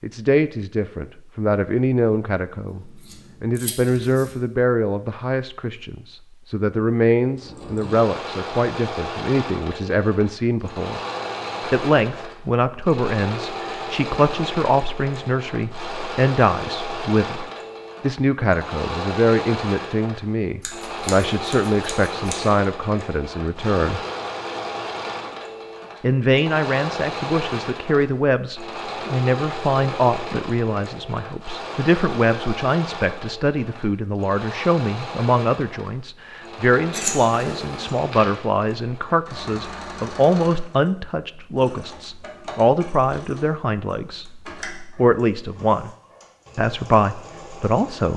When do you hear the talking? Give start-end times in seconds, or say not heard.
0.0-11.0, 11.7-24.0, 26.0-45.9, 46.5-48.1.